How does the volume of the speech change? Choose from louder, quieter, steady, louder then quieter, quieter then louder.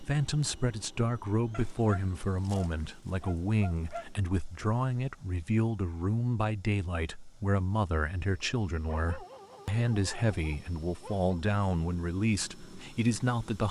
steady.